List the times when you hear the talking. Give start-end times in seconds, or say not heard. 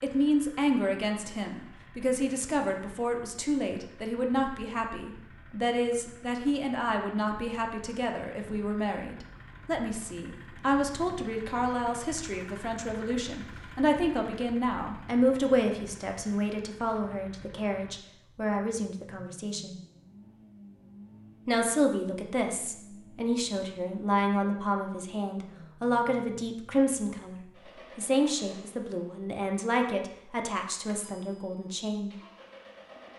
0.0-19.8, 21.4-32.1.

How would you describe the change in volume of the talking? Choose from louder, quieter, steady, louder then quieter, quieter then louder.
steady.